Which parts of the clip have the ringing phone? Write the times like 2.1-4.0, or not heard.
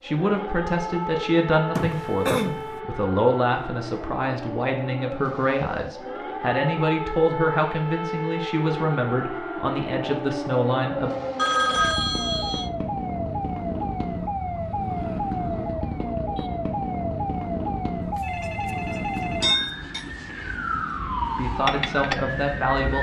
1.8-2.8, 11.3-12.7, 18.0-19.6.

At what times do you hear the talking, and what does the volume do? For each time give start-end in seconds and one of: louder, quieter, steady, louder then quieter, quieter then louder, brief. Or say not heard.
0.0-11.1 steady
21.4-22.9 brief.